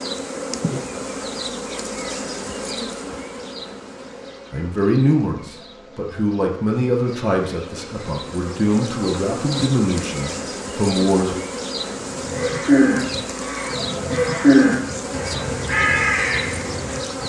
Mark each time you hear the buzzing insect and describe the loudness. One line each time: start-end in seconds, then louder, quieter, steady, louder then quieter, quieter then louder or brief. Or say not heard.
0.0-17.2 quieter then louder.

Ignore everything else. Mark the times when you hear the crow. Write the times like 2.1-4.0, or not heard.
12.2-17.2.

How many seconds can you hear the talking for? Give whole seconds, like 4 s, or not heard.
7 s.